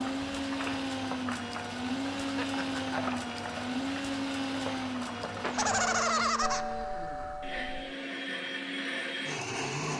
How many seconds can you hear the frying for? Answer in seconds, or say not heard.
6 s.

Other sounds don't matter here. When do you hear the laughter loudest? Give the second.
6 s.